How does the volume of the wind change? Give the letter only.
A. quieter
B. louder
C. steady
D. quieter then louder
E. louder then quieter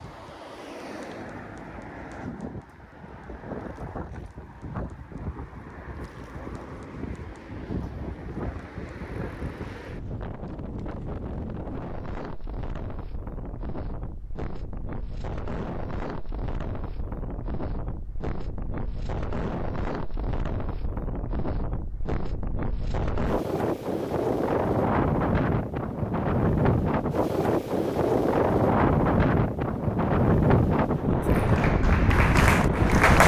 B.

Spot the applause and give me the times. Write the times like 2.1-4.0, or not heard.
31.2-33.2.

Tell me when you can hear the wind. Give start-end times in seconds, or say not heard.
0.0-33.2.